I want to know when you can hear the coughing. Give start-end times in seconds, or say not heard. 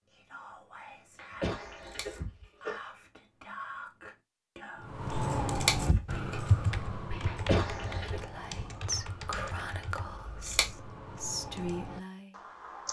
1.1-2.8, 7.2-8.2.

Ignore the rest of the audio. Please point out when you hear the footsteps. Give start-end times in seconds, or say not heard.
not heard.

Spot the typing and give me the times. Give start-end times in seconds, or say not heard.
4.8-12.8.